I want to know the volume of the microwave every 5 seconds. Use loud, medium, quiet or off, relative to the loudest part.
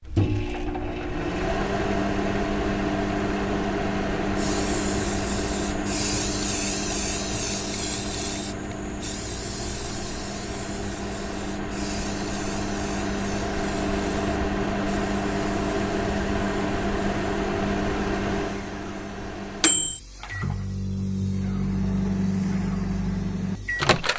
loud, medium, loud, loud, loud.